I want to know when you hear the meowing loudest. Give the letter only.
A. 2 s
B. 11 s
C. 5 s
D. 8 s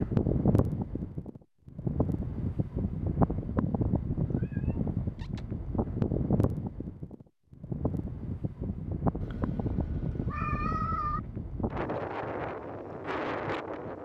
B.